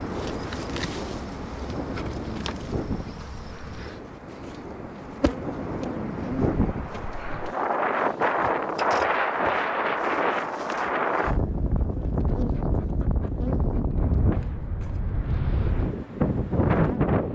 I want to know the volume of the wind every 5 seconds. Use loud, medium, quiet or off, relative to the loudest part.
medium, loud, loud, loud.